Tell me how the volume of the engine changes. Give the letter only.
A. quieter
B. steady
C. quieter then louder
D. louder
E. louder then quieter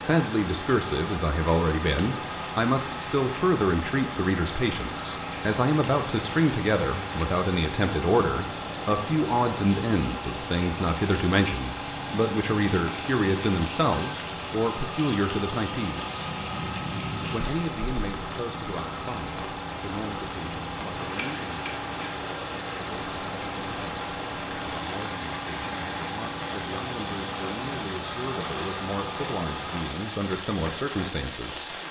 B.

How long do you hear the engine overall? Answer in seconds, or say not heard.
30 s.